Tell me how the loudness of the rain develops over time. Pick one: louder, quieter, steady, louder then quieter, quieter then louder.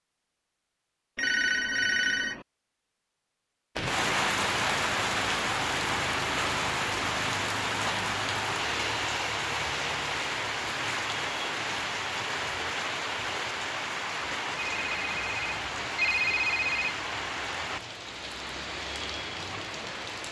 quieter.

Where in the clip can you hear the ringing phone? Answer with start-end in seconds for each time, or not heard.
1.1-2.5, 14.7-16.9.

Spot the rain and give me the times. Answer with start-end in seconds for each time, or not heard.
3.8-20.2.